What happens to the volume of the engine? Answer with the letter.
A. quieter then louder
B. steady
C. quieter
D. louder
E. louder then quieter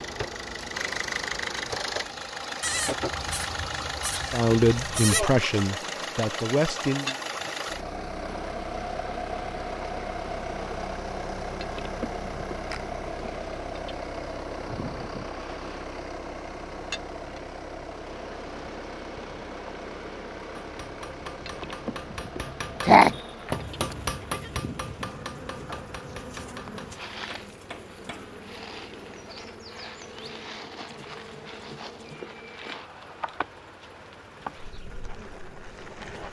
C.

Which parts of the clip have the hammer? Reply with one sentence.
You can hear the hammer from 20.6 to 28.3 s.